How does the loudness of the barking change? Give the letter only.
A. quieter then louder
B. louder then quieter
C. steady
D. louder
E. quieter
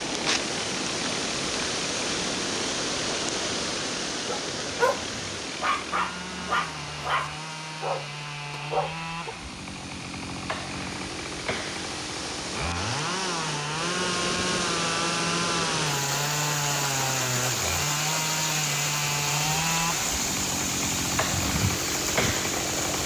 C.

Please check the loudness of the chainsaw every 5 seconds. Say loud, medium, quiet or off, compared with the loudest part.
medium, medium, loud, loud, loud.